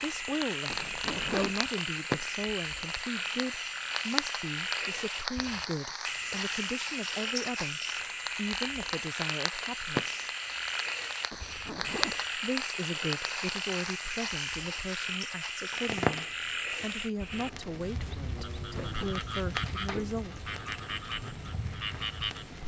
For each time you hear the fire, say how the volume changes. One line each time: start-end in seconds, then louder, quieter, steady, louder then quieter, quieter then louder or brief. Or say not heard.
0.0-22.6 quieter.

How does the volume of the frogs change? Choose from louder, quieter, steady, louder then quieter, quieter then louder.
steady.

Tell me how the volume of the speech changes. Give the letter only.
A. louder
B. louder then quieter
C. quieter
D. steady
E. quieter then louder
D.